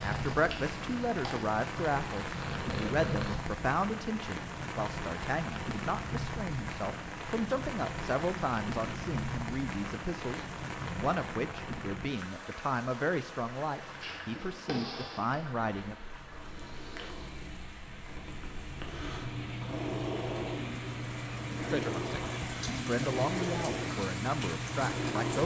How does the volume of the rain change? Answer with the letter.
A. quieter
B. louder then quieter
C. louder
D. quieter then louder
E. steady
D.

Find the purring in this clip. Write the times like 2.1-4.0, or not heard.
0.0-3.4, 13.8-25.4.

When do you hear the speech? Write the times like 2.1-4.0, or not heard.
0.0-15.9, 21.6-25.4.